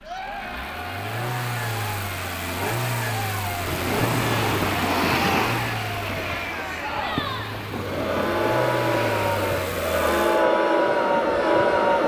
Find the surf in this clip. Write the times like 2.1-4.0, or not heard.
3.5-12.0.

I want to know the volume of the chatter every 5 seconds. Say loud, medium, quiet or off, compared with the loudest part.
quiet, medium, loud.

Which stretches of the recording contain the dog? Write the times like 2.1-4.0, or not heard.
not heard.